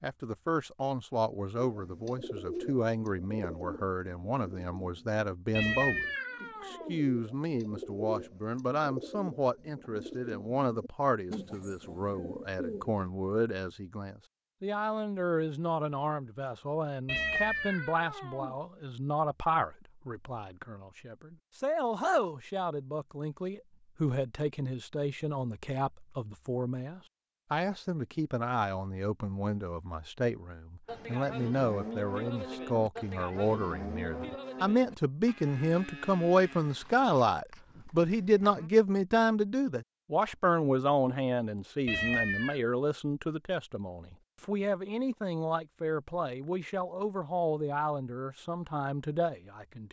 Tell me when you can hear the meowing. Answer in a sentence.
You can hear the meowing from 5.5 to 7.0 s, from 17.1 to 18.6 s and from 41.9 to 42.6 s.